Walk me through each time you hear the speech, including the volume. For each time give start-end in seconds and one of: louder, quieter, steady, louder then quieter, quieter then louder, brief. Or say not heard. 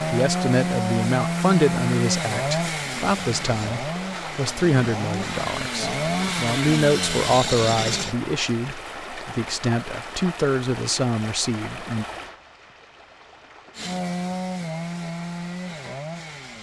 0.0-12.1 steady.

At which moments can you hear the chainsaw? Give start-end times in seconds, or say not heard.
0.0-8.2, 13.8-16.5.